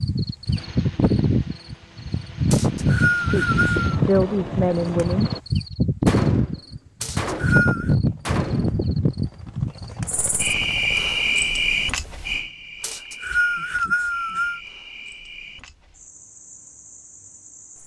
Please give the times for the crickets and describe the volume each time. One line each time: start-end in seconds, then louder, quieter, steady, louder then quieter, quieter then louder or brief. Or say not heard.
0.0-17.8 quieter.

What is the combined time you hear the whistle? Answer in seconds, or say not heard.
4 s.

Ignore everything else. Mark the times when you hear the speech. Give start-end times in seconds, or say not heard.
3.1-5.3.